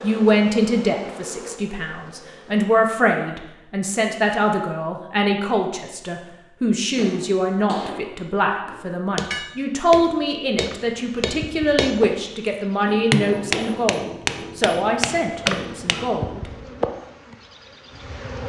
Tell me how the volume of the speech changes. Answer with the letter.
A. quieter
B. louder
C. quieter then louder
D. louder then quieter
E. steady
E.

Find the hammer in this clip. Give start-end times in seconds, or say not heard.
7.0-16.1.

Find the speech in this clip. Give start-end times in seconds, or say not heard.
0.0-16.5.